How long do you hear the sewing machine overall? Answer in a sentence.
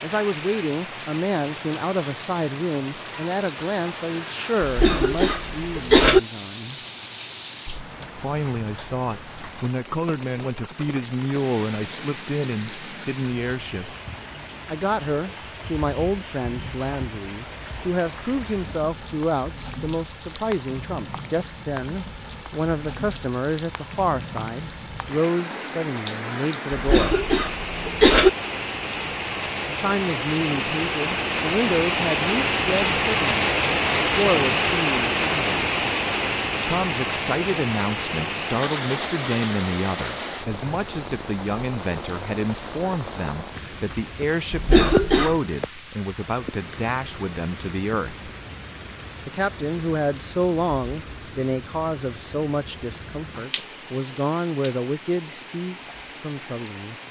The sewing machine can't be heard in this clip.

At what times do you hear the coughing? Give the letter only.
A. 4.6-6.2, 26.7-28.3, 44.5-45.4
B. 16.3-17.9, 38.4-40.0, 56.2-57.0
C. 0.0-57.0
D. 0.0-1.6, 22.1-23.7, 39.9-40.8
A.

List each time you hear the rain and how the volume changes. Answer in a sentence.
You can hear the rain from 0.0 to 57.0 s, getting louder then quieter.